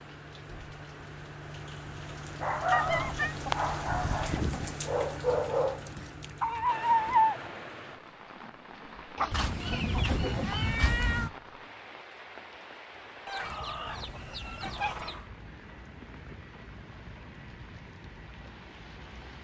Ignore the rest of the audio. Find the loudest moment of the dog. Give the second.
7 s.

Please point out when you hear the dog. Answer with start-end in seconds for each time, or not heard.
2.4-7.4.